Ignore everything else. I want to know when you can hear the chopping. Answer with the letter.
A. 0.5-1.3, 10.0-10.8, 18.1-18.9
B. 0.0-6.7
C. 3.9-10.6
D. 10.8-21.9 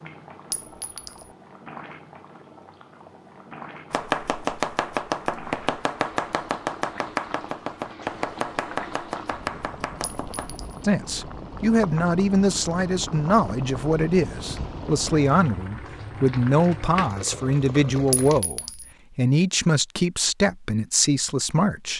C.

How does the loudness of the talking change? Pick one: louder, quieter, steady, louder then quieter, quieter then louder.
steady.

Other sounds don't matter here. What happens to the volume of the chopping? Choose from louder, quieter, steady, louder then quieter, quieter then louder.
quieter.